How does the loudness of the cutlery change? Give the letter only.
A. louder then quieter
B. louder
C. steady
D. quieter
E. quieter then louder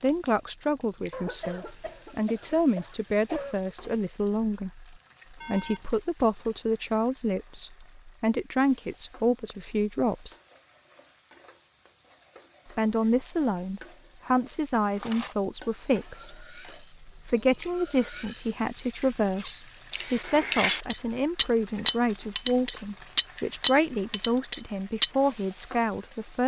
B.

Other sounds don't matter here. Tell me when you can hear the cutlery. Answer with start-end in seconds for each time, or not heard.
15.0-25.1.